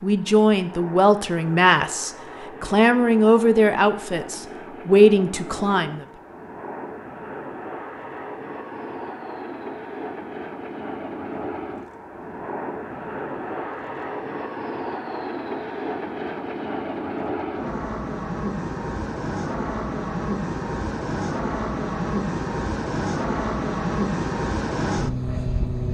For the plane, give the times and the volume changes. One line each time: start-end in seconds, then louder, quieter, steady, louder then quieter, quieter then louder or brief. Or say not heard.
0.0-25.9 louder.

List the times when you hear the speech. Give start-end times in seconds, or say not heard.
0.0-6.0.